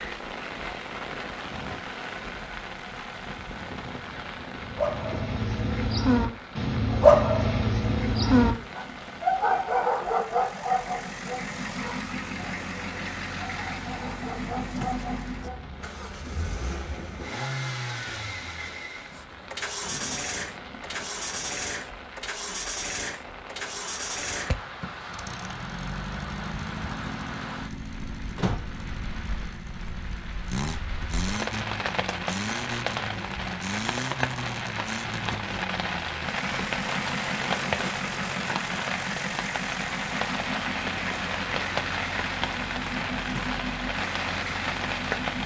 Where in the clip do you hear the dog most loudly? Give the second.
7 s.